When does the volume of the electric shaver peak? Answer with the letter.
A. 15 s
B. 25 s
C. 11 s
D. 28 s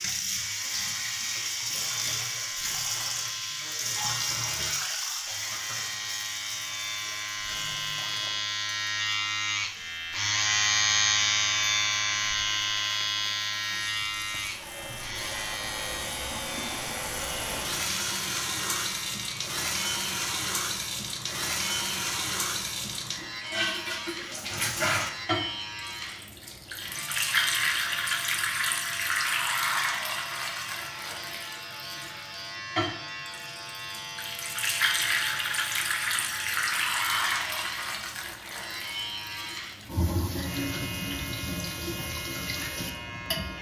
C.